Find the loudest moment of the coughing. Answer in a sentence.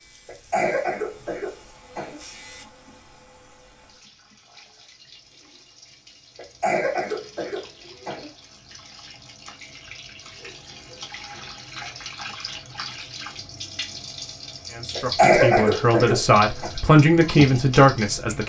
The volume of the coughing peaks at 15 seconds.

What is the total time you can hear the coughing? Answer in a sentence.
The coughing can be heard for 6 seconds in total.